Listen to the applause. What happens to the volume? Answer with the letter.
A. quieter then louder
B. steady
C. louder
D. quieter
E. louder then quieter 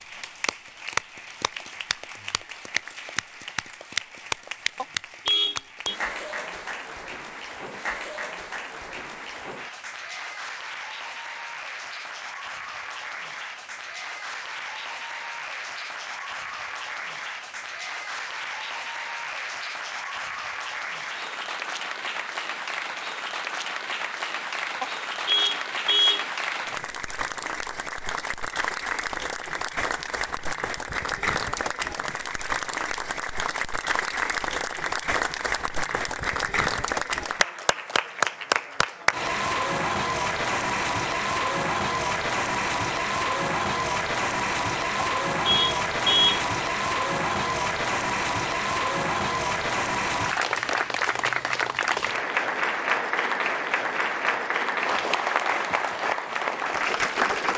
C.